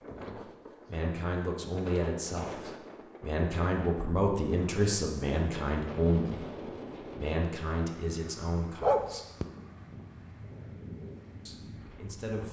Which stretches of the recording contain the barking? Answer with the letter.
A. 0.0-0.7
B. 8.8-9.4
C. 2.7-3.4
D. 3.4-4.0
B.